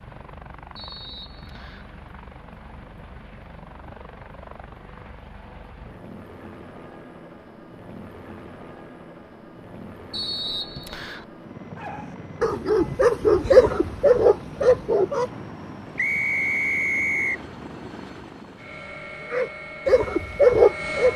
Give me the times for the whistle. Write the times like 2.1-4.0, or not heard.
0.8-1.9, 10.1-11.2, 15.9-17.4.